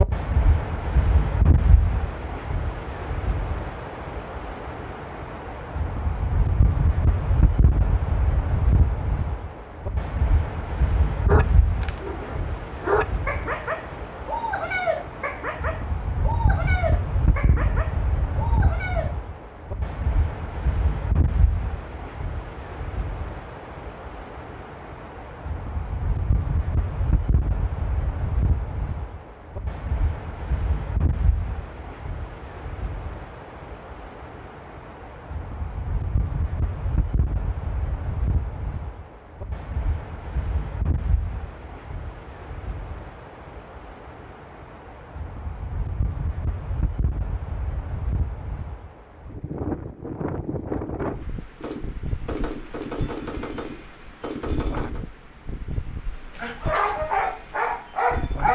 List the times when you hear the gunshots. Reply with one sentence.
The gunshots can be heard from 51.6 to 55.0 s.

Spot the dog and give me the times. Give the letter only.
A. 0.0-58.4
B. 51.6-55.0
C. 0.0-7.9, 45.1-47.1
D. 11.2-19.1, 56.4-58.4
D.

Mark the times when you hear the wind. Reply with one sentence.
You can hear the wind from 0.0 to 58.4 s.